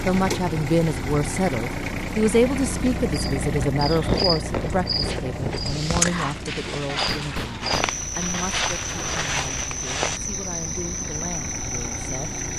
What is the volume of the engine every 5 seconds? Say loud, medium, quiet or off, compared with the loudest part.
loud, medium, medium.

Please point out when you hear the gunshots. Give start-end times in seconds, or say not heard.
6.8-9.7.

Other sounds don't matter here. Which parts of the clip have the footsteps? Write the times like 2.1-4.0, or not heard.
3.9-10.2.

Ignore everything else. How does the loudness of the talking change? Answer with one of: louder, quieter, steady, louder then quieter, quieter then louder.
quieter.